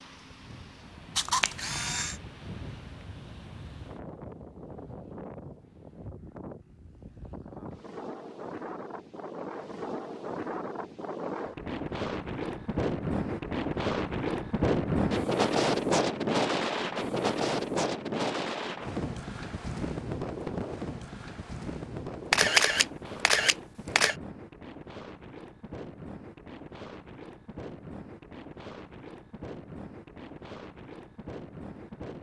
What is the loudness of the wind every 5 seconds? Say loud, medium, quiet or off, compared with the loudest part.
quiet, quiet, loud, loud, medium, quiet, quiet.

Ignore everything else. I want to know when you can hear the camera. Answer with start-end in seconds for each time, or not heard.
1.1-2.1, 22.3-24.1.